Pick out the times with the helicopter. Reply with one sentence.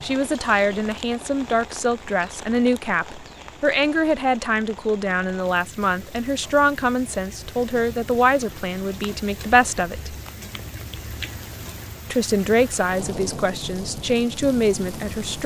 The helicopter can't be heard in this clip.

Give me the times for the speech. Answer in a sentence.
You can hear the speech from 0.0 to 10.2 s and from 12.1 to 15.4 s.